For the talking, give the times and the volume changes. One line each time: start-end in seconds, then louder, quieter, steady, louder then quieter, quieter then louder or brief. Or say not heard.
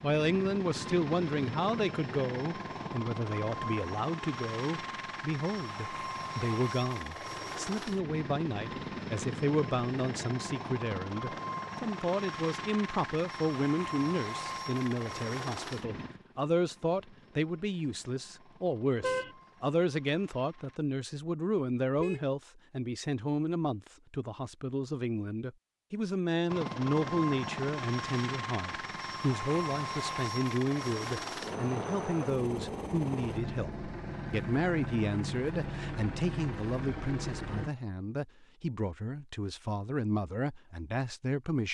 0.0-41.6 steady.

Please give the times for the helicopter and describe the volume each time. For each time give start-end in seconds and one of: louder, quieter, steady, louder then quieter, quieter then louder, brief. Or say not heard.
0.0-20.8 quieter
26.4-37.7 steady.